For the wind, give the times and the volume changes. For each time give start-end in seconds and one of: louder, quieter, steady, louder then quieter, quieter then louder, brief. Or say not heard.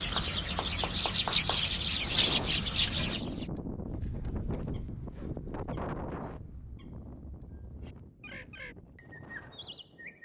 1.9-10.1 quieter.